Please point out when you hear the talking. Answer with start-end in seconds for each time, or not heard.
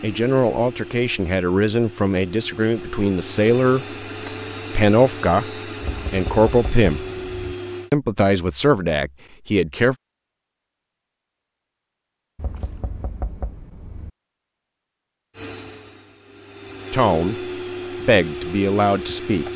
0.0-3.9, 4.8-5.5, 6.1-7.0, 7.9-9.9, 16.9-17.4, 18.1-19.5.